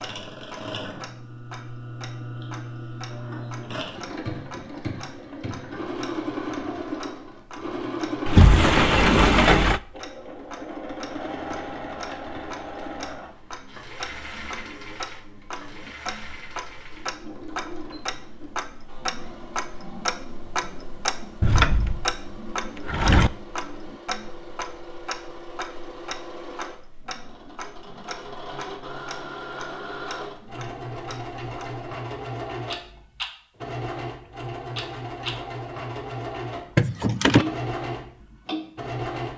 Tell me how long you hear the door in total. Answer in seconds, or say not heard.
4 s.